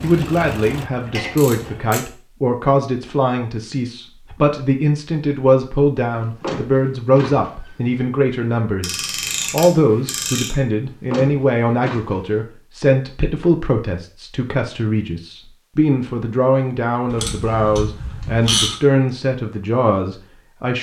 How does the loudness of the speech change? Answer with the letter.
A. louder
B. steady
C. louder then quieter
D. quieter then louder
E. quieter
B.